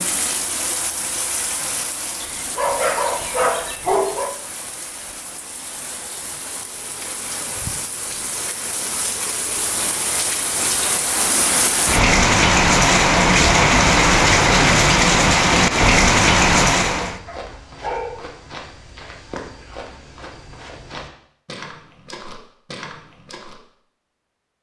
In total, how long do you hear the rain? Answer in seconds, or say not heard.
17 s.